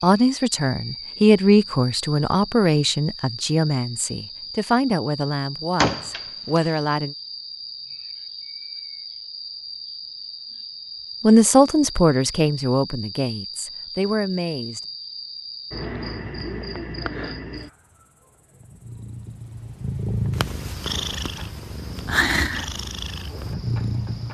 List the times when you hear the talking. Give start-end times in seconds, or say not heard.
0.0-7.2, 11.2-14.8.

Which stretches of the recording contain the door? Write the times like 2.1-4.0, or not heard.
5.8-6.7.